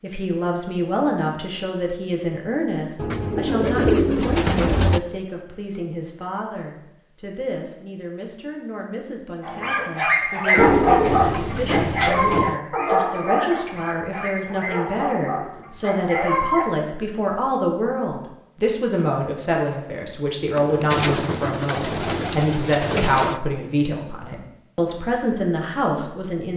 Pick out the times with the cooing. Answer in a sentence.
The cooing can be heard from 3.0 to 5.0 s, from 10.6 to 12.6 s and from 20.6 to 23.4 s.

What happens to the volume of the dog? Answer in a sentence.
The loudness of the dog goes down.